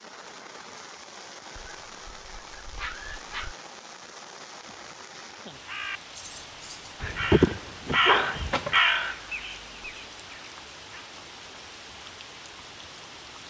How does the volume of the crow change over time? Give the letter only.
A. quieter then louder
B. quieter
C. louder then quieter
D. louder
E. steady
C.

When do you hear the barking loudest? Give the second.
7 s.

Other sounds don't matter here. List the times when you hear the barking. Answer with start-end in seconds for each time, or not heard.
1.6-3.5, 7.0-8.8.